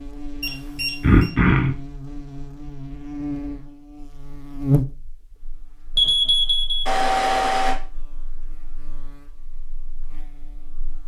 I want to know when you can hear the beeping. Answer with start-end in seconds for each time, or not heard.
0.4-1.3, 6.0-7.8.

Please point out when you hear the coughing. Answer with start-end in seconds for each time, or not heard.
1.0-1.8.